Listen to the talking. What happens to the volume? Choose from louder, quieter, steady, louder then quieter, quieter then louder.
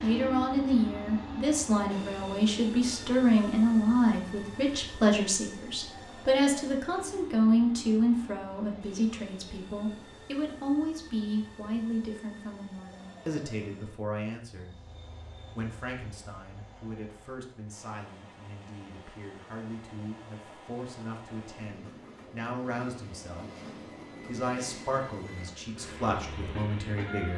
quieter then louder.